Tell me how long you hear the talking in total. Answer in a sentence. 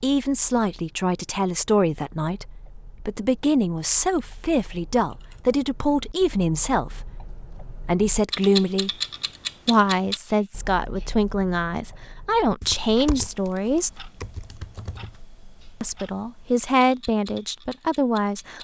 You can hear the talking for 16 seconds altogether.